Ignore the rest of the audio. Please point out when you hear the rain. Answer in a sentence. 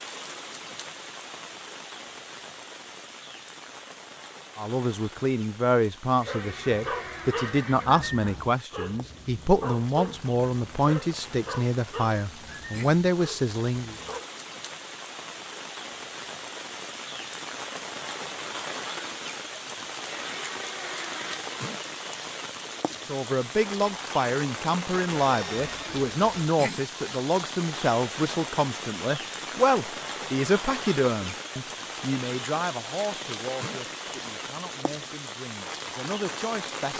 You can hear the rain from 0.0 to 36.9 s.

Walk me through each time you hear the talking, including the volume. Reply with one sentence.
You can hear the talking from 4.5 to 13.9 s, at a steady volume; and from 23.1 to 36.9 s, getting quieter.